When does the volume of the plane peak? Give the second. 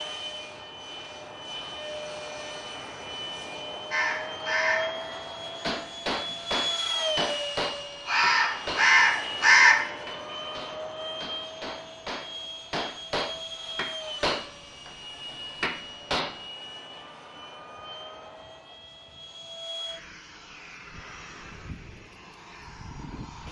7 s.